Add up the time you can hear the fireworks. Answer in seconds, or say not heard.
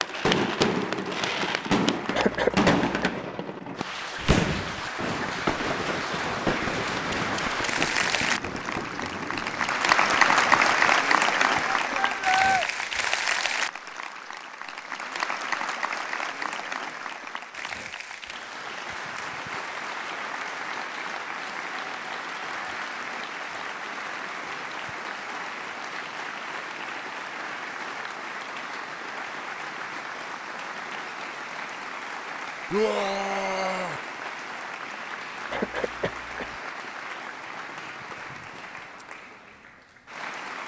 11 s.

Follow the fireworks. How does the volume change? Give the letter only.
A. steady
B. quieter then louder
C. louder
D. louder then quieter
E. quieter
E.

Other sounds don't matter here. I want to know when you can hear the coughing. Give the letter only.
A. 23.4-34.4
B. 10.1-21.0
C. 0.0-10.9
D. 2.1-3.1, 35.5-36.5
D.